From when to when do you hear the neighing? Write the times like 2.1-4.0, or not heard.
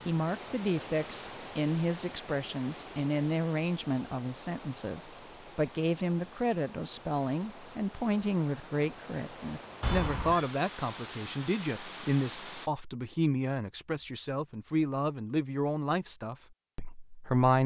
9.8-10.4.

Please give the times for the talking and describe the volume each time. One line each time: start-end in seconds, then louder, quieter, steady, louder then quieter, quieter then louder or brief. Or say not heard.
0.1-17.6 steady.